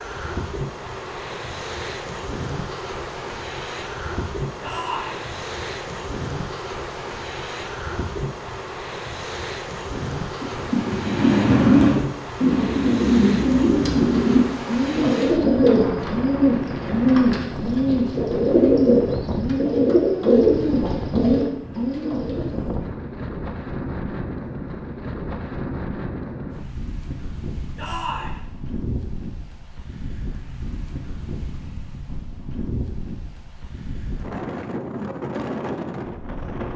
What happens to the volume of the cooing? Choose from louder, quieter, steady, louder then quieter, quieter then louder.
steady.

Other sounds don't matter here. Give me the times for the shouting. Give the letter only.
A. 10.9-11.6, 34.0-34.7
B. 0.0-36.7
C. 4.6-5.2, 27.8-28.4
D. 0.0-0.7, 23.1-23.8
C.